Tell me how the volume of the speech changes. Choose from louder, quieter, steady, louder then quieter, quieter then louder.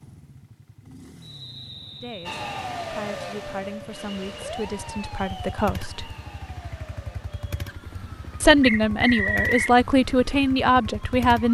louder.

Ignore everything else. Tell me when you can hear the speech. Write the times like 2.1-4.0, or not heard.
1.9-6.2, 8.4-11.4.